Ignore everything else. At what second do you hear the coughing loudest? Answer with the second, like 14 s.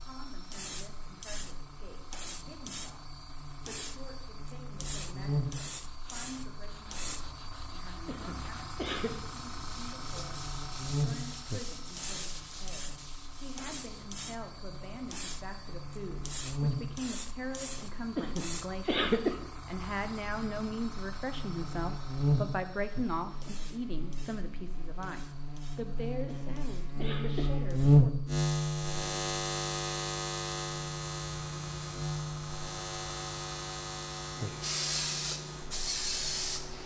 19 s.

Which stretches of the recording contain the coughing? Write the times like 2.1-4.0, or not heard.
8.1-9.2, 18.1-19.4, 26.2-27.5.